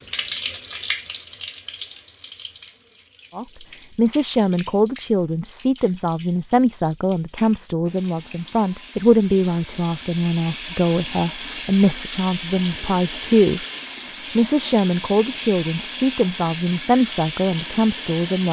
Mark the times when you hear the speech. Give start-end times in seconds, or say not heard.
3.4-13.7, 14.3-18.4.